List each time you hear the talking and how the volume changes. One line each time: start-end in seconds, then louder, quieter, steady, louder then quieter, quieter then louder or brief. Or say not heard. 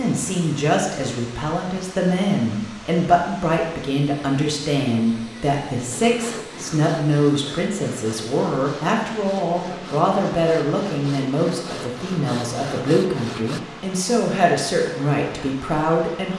0.0-16.3 steady.